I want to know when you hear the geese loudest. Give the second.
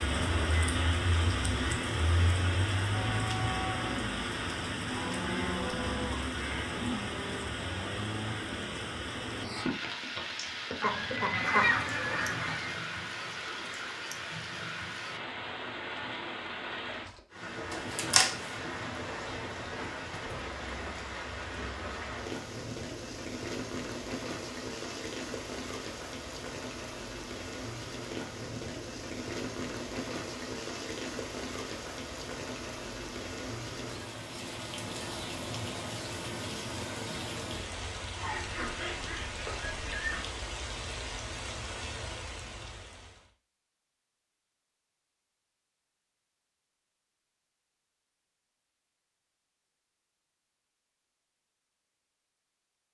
12 s.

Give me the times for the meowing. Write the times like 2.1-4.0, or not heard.
17.7-18.6.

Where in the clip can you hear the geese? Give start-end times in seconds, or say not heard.
10.8-12.8, 38.1-40.2.